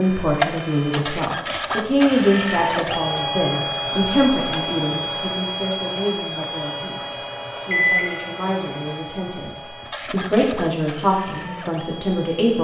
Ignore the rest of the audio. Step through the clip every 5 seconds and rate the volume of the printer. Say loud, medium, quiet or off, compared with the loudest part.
loud, medium, medium.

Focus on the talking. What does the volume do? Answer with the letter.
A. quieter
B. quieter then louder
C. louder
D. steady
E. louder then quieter
B.